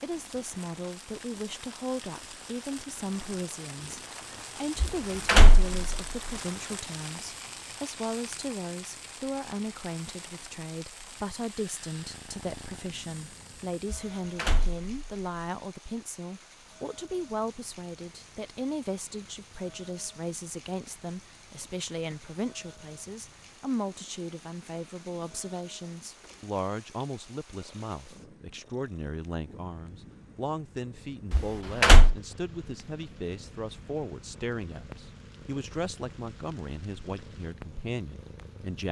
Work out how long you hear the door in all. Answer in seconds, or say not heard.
3 s.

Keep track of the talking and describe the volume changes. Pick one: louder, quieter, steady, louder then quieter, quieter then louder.
steady.